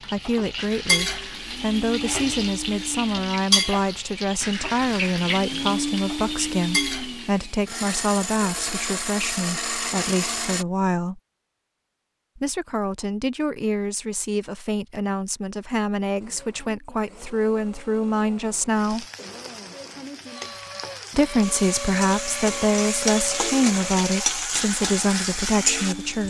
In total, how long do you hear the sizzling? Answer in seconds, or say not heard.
15 s.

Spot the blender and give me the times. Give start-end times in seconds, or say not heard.
0.0-10.7, 16.2-26.2.